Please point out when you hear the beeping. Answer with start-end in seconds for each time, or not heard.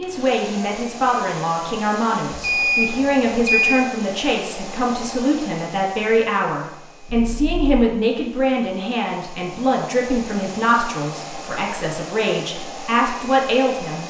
2.3-3.8, 7.0-7.9.